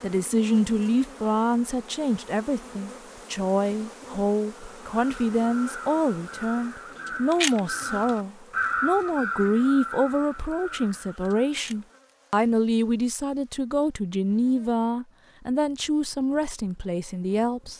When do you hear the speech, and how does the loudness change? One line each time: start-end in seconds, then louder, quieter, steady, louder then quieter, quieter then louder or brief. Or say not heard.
0.0-17.7 steady.